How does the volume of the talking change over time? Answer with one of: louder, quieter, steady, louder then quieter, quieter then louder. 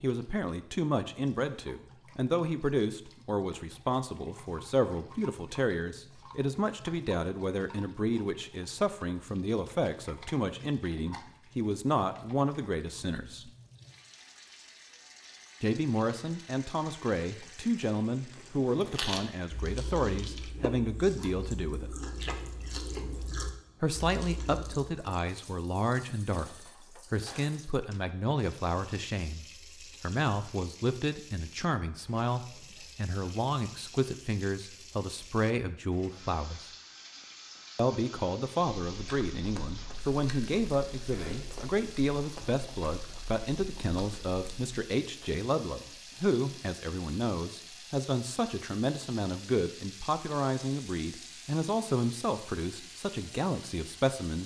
steady.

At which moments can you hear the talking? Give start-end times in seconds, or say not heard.
0.0-13.5, 15.6-22.0, 23.8-36.7, 37.8-54.4.